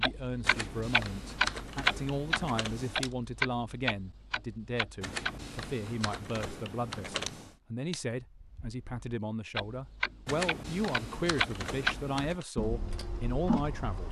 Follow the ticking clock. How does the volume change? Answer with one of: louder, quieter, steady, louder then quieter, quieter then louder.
quieter then louder.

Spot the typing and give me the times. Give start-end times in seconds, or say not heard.
0.4-3.1, 5.0-7.5, 10.2-12.4.